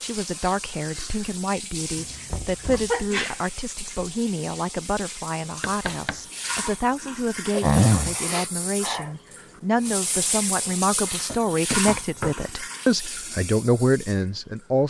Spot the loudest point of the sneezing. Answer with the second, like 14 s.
8 s.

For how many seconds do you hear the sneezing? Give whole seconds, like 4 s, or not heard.
3 s.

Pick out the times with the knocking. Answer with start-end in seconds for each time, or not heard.
2.3-3.0, 5.6-6.2, 11.2-12.3.